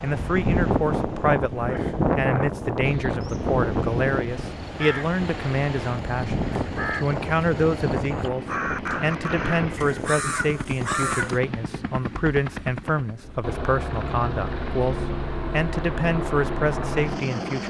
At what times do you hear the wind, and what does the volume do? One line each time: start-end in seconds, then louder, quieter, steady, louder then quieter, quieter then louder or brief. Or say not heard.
0.0-11.8 quieter.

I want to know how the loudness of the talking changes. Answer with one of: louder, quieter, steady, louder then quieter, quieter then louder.
steady.